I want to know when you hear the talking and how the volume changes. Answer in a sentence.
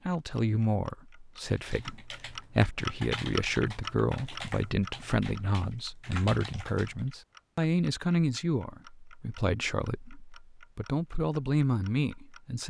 You can hear the talking from 0.1 to 12.6 s, at a steady volume.